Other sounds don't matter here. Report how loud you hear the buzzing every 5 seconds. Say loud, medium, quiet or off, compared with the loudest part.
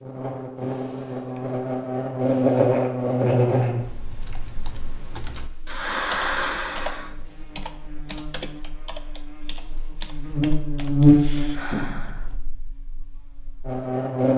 loud, quiet, loud.